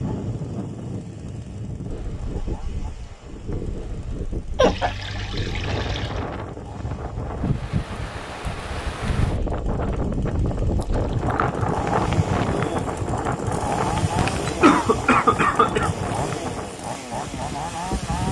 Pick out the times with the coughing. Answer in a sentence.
You can hear the coughing from 4.5 to 5.0 s and from 14.2 to 15.9 s.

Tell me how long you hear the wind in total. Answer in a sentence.
The wind can be heard for 18 seconds in total.